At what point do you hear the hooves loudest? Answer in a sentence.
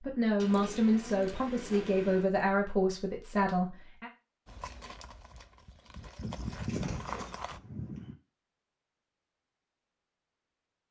The loudest moment of the hooves is at 7 seconds.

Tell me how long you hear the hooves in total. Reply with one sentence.
You can hear the hooves for 3 seconds altogether.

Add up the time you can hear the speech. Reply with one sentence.
The speech can be heard for 4 seconds in total.